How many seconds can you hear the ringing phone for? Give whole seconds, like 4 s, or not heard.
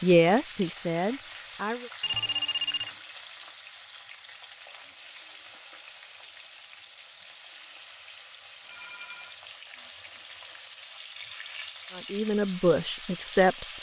2 s.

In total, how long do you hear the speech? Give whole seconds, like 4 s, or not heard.
4 s.